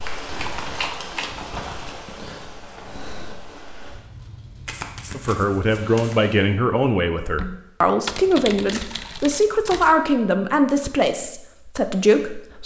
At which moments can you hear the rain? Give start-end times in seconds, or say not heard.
0.0-6.5.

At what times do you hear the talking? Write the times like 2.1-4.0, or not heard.
5.2-12.6.